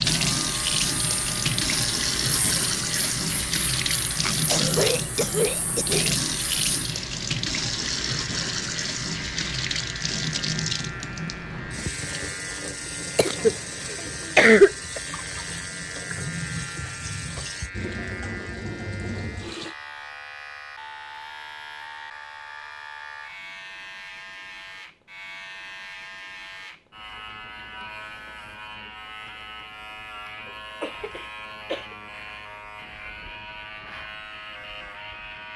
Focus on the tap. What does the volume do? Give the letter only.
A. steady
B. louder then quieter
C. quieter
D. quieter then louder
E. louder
C.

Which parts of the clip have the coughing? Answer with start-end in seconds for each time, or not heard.
4.2-6.2, 13.2-15.0, 30.4-31.9.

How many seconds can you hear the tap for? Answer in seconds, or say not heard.
20 s.